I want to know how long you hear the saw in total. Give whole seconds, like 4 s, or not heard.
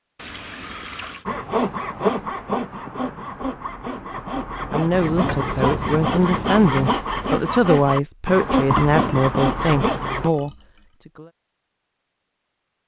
9 s.